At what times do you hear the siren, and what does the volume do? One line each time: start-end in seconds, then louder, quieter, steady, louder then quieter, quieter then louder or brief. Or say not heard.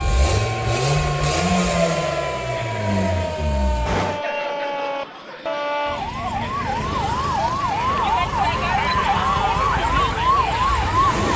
0.0-11.3 louder.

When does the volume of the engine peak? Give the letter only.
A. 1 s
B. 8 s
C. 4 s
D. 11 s
A.